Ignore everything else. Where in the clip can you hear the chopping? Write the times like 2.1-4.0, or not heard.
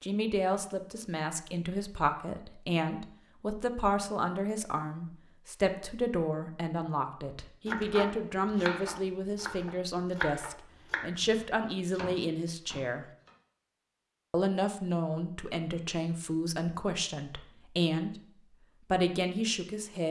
7.7-13.3.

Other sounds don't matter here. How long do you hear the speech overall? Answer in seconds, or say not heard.
18 s.